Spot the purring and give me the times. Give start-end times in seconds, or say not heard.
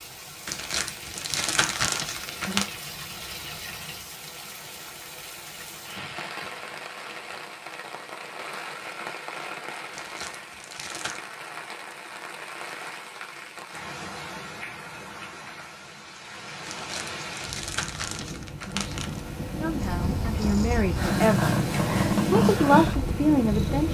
19.8-23.8.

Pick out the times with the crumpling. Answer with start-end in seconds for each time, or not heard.
0.5-2.7, 9.9-11.2, 16.6-19.2.